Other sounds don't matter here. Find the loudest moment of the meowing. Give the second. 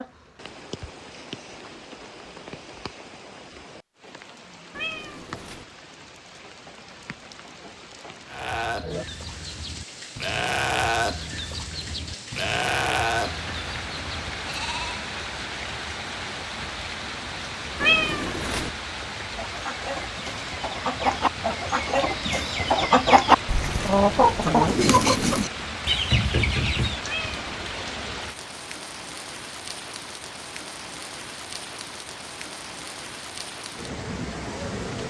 18 s.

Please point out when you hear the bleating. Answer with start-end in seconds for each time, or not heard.
8.2-15.1.